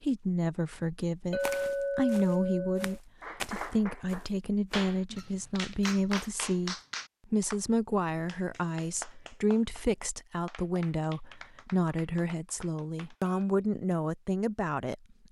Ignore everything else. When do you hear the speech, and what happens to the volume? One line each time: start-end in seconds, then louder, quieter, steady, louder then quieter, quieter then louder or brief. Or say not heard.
0.0-14.9 steady.